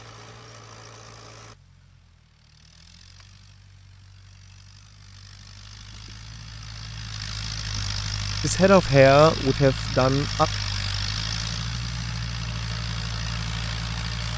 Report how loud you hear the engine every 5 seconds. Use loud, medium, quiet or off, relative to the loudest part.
quiet, loud, loud.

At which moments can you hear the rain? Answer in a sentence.
The rain can't be heard in this clip.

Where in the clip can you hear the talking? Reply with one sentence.
The talking can be heard from 8.4 to 10.4 s.